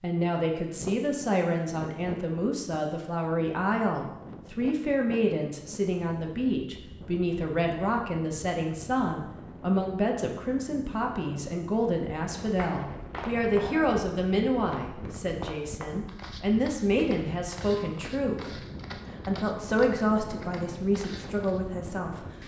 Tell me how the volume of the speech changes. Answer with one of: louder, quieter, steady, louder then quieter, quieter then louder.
steady.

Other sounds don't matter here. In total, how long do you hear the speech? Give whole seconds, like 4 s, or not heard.
22 s.